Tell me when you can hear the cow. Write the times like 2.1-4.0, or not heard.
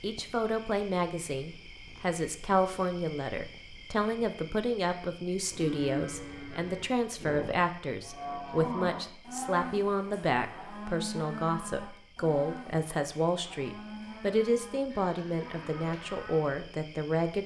5.5-16.4.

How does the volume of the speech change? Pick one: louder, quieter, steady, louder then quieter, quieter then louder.
steady.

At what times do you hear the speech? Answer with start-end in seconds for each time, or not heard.
0.0-17.4.